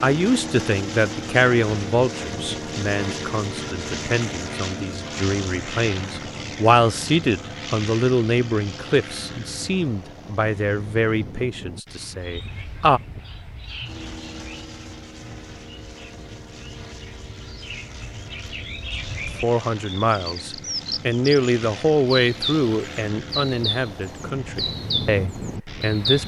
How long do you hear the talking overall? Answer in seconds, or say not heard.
20 s.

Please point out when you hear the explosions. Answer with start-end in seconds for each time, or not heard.
not heard.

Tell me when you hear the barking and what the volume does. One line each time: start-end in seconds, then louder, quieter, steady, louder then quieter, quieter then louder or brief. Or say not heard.
not heard.